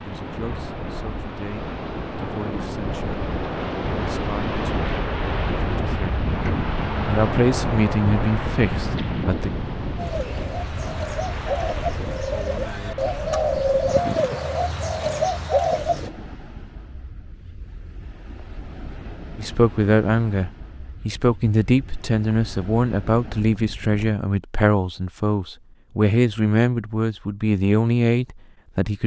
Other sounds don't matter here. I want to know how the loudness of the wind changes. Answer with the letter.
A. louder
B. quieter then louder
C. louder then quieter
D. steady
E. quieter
E.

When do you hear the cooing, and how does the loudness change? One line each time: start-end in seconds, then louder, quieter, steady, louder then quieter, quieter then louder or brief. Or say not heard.
9.9-16.1 louder.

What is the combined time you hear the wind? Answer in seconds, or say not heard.
24 s.